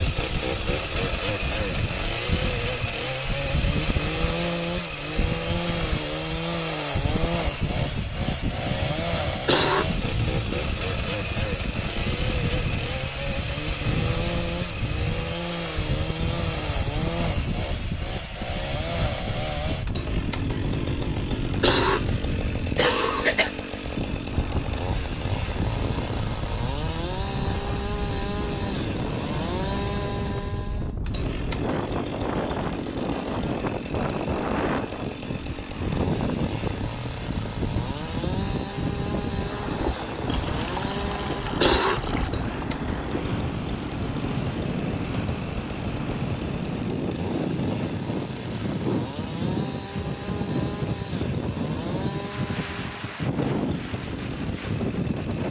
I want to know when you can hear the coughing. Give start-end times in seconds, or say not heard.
9.2-10.1, 21.4-23.5, 41.4-42.1.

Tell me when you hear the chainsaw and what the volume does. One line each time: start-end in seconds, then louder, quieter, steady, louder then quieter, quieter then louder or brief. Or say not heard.
0.0-55.4 quieter.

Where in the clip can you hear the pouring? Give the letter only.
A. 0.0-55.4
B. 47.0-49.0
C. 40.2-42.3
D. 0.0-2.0
C.